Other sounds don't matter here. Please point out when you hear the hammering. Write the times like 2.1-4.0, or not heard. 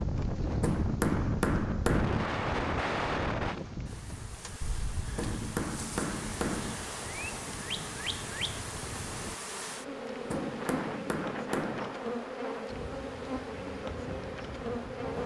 0.6-2.3, 5.2-6.8, 10.3-12.0.